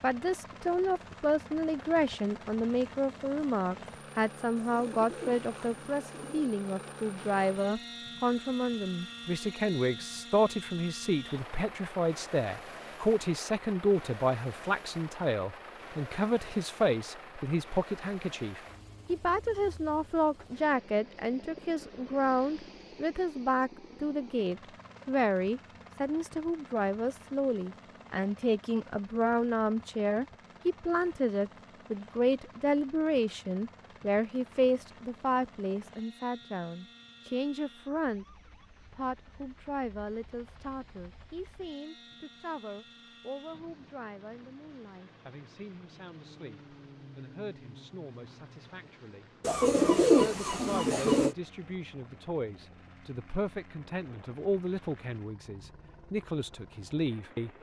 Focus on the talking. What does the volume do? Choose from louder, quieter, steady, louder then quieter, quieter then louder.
quieter.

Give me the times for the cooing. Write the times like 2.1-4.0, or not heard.
4.5-6.5, 49.4-51.4.